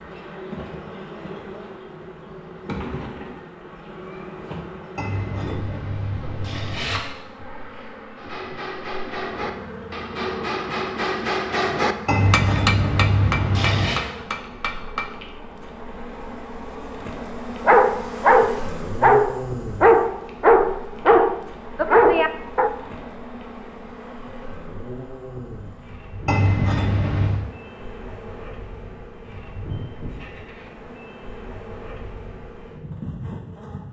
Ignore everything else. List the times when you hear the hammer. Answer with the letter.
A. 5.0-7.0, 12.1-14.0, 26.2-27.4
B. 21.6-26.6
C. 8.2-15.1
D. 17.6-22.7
C.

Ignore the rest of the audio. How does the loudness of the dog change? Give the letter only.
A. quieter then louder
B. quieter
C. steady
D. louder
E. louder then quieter
C.